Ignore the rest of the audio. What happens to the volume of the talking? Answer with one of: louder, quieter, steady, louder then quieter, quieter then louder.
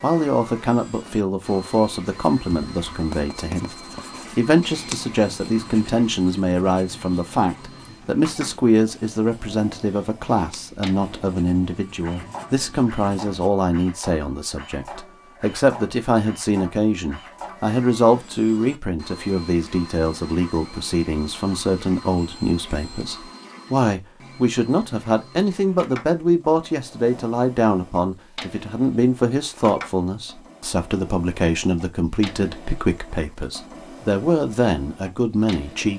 steady.